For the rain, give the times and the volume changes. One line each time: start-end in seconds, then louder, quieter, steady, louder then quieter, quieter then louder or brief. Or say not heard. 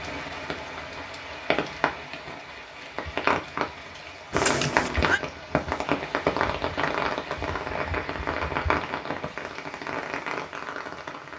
0.0-11.3 louder then quieter.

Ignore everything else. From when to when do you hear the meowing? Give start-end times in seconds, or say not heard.
4.3-5.2.